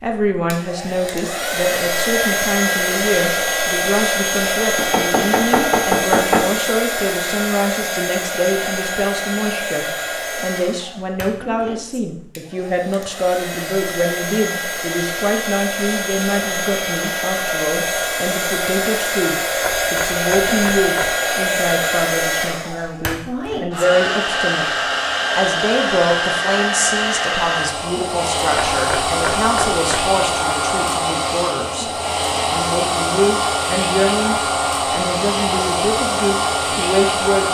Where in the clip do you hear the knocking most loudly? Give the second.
6 s.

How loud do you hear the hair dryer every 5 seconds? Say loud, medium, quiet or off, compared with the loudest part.
loud, loud, medium, loud, loud, loud, loud, loud.